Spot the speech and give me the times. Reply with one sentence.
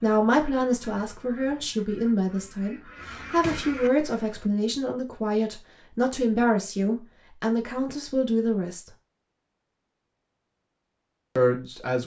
You can hear the speech from 0.0 to 8.9 s and from 11.3 to 12.0 s.